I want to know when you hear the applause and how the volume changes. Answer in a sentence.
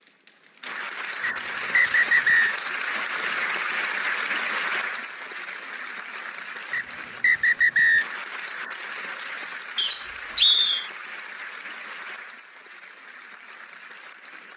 You can hear the applause from 0.0 to 14.5 s, getting quieter.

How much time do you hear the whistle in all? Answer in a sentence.
You can hear the whistle for 4 seconds altogether.